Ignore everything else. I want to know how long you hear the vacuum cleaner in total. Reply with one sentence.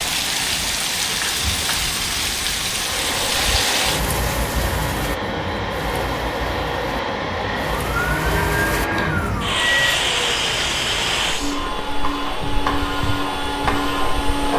The vacuum cleaner can be heard for 12 seconds in total.